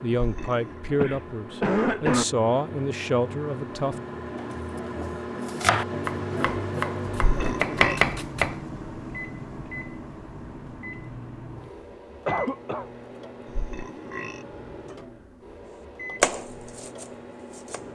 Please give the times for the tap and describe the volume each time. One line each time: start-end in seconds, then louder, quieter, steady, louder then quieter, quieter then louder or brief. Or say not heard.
not heard.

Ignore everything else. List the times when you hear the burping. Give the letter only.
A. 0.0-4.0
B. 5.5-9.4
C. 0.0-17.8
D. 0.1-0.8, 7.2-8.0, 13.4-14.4
D.